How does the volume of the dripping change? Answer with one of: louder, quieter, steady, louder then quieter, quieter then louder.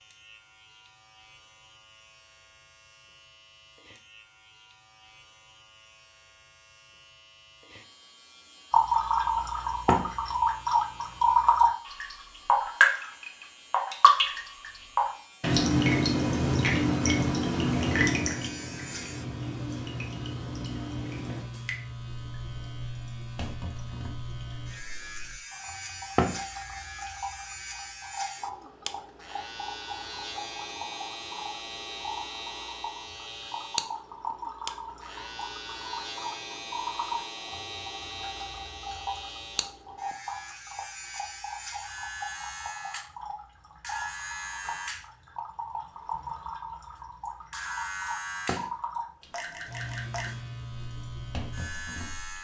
quieter.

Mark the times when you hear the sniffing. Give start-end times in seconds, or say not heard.
not heard.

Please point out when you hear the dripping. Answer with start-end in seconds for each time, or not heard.
8.7-52.3.